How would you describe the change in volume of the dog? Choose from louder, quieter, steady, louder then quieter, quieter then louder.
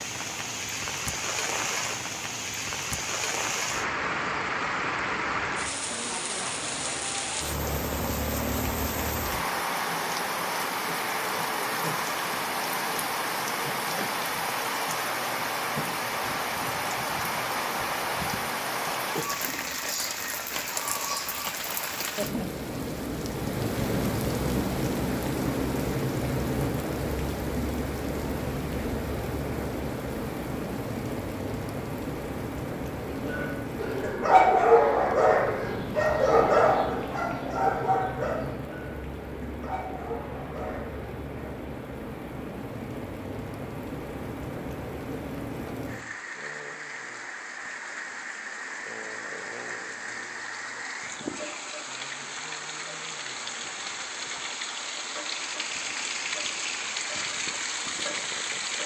quieter.